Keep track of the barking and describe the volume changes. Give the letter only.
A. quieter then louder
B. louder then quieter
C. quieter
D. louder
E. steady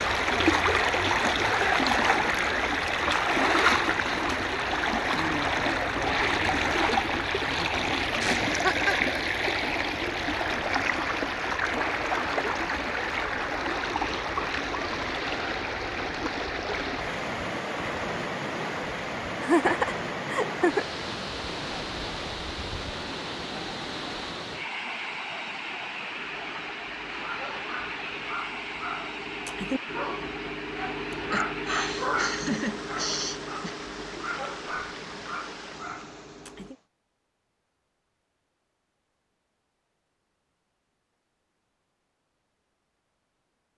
B.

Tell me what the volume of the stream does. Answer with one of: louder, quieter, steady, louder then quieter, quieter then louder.
quieter.